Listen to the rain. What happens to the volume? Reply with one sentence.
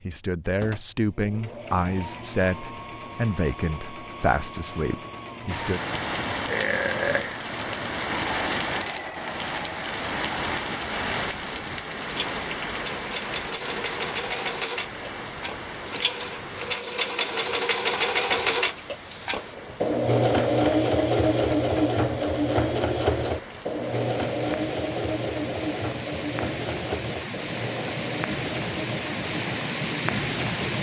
The loudness of the rain goes down, then up.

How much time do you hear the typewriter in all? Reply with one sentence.
The typewriter can't be heard in this clip.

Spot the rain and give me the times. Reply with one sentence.
You can hear the rain from 5.5 to 30.7 s.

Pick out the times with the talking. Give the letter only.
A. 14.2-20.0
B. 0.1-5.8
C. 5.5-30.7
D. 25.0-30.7
B.